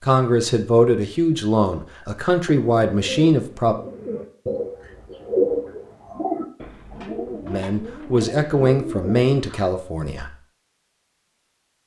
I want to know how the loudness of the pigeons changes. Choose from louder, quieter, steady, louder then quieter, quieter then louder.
louder then quieter.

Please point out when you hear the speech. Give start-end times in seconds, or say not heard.
0.0-3.8, 7.5-10.3.